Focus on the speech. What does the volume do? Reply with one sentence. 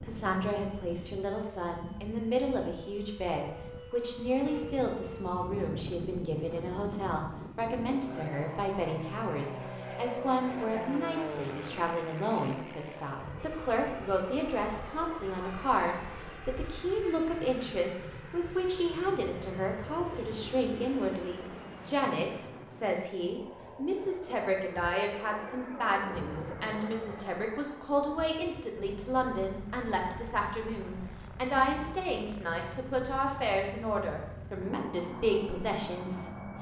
The loudness of the speech stays about the same.